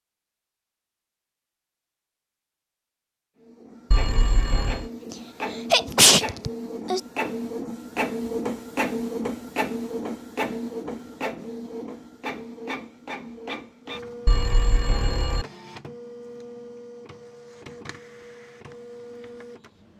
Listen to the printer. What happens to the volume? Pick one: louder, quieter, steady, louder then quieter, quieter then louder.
louder then quieter.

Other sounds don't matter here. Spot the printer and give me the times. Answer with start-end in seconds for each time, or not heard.
3.4-19.9.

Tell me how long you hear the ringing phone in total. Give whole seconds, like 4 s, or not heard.
2 s.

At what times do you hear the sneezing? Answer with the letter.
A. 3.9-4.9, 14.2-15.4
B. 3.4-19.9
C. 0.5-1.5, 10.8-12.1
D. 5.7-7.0
D.